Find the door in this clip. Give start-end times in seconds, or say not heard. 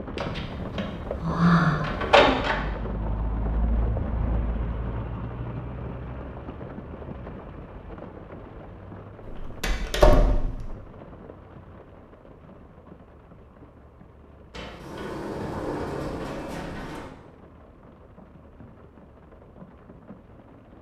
0.1-2.5, 9.2-10.8, 14.5-17.1.